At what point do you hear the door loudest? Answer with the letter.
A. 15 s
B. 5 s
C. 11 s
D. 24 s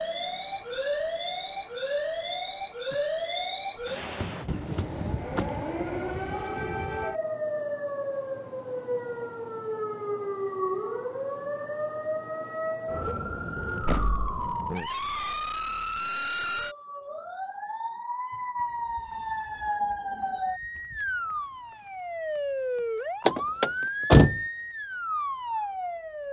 D.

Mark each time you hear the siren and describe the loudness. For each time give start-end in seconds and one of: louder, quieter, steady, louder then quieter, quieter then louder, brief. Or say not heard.
0.0-26.2 steady.